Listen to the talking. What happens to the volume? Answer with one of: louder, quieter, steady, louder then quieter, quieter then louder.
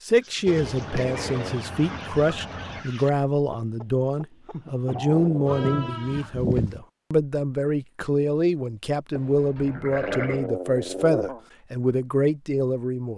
steady.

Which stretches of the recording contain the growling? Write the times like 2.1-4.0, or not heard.
0.9-1.6, 5.0-6.0, 10.0-11.4.